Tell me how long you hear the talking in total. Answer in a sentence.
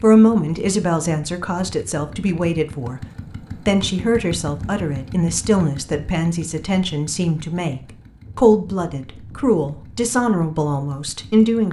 You can hear the talking for 11 seconds altogether.